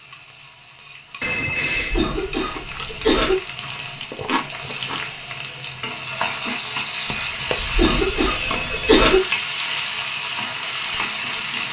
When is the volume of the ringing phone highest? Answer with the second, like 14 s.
2 s.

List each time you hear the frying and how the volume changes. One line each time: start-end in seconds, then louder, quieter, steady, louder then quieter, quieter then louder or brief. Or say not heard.
0.0-11.6 louder.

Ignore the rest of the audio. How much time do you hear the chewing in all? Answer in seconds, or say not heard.
3 s.